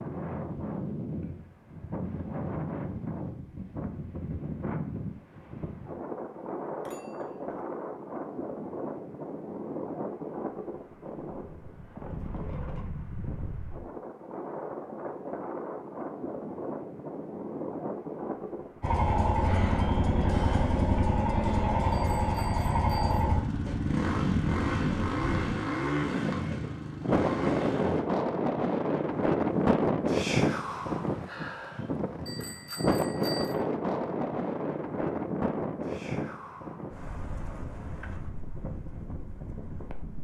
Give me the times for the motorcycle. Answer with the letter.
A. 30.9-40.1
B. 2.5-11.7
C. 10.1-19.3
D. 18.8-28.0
D.